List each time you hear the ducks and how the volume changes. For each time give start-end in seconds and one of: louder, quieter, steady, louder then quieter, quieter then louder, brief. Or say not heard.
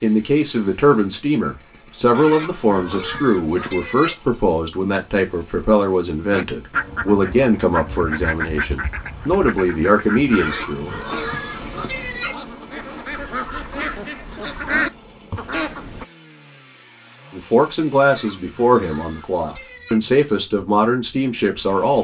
6.3-16.1 quieter then louder.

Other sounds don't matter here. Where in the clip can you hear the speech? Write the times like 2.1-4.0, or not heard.
0.0-10.9, 17.3-21.9.